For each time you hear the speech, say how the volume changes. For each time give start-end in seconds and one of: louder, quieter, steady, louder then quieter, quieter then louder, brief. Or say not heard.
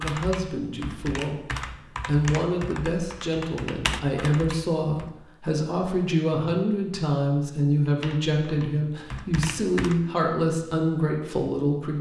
0.0-11.9 steady.